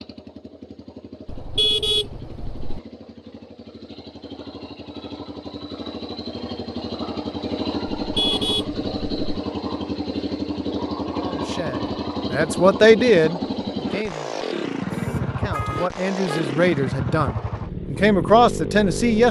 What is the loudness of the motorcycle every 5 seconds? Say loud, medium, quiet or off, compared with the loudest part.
quiet, loud, loud, loud.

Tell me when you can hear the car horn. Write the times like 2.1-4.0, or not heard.
1.2-2.8, 7.8-9.4, 14.9-16.6.